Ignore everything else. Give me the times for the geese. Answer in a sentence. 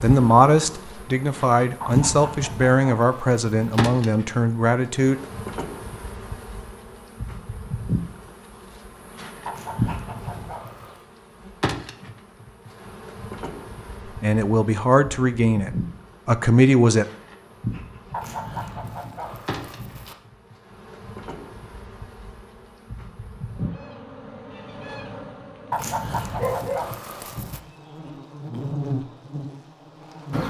The geese can be heard from 1.8 to 3.8 s, from 9.4 to 11.0 s, from 18.1 to 20.1 s and from 25.7 to 27.6 s.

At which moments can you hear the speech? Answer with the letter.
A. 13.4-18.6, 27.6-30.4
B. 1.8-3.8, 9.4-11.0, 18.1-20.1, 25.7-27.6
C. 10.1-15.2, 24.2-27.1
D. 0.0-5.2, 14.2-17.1
D.